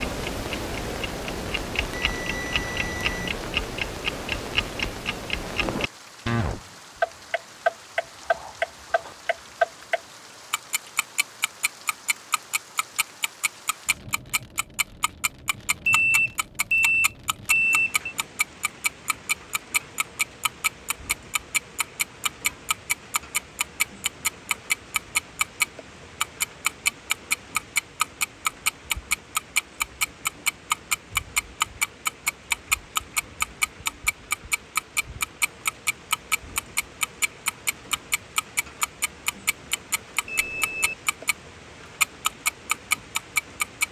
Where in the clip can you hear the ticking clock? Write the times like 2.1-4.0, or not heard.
0.0-41.4, 42.0-43.8.